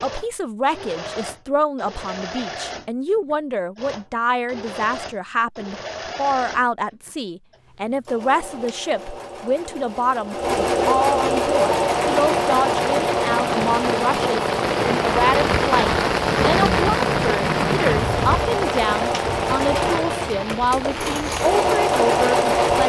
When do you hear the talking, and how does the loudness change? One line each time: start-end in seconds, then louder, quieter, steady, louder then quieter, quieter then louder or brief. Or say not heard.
0.0-22.8 steady.